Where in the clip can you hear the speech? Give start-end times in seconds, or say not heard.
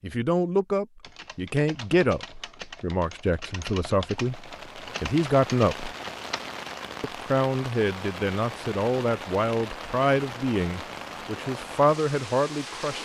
0.0-6.0, 7.0-13.0.